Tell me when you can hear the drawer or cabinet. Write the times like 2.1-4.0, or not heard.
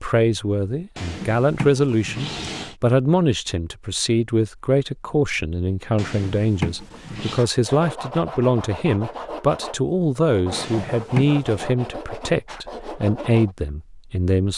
0.9-2.8, 6.0-7.4, 10.5-11.7.